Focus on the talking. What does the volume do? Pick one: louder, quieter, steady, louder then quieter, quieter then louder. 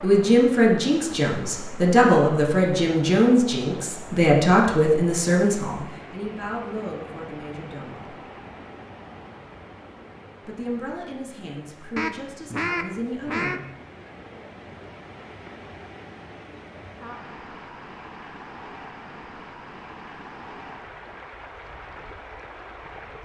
quieter.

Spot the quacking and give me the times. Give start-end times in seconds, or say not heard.
11.9-13.6.